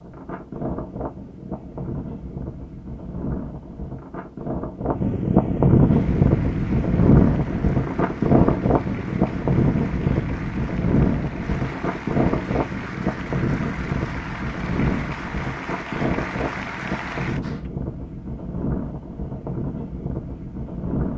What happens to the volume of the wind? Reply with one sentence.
The volume of the wind goes up, then down.